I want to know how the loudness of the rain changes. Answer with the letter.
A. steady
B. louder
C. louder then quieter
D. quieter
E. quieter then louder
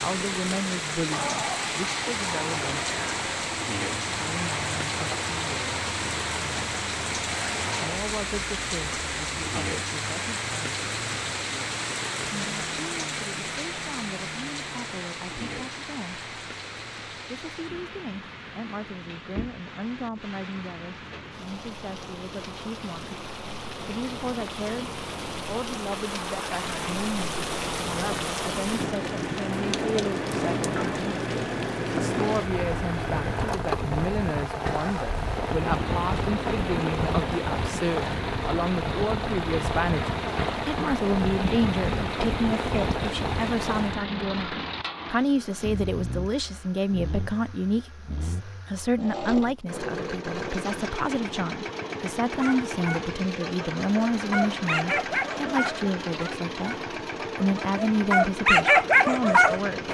E.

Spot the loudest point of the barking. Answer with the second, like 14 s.
59 s.